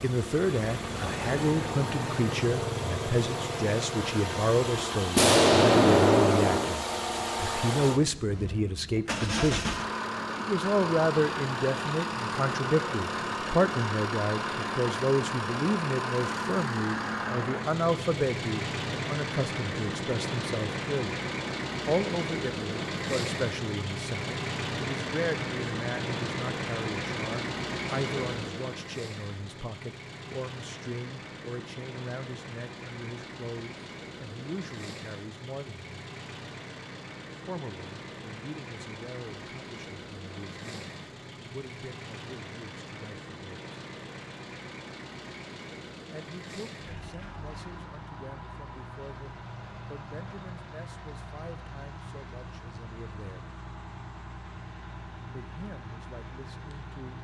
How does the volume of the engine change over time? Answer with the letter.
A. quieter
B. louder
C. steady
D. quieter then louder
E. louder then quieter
A.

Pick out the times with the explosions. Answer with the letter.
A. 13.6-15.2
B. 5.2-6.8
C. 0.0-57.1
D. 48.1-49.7
B.